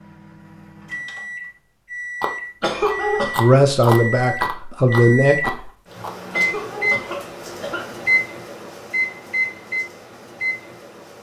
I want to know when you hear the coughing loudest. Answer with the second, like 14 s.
3 s.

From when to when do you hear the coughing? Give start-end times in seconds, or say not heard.
2.6-3.4, 6.3-8.0.